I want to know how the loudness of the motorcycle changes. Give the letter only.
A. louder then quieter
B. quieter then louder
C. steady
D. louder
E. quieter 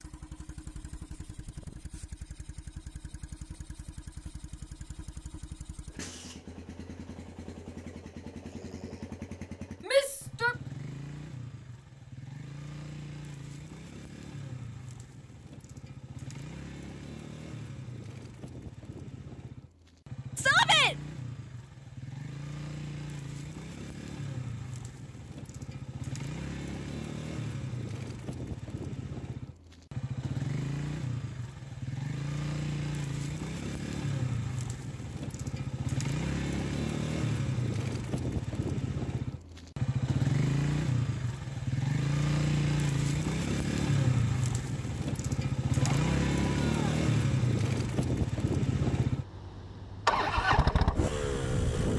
D.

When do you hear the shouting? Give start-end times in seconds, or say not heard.
9.8-10.6, 20.4-20.9, 45.8-46.9.